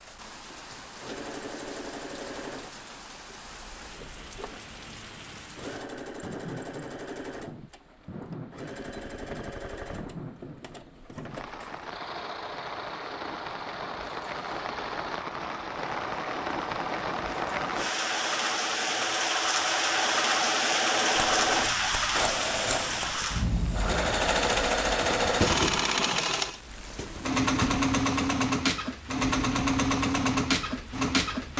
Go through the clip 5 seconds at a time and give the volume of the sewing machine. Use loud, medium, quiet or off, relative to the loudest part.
quiet, quiet, quiet, medium, loud, loud, loud.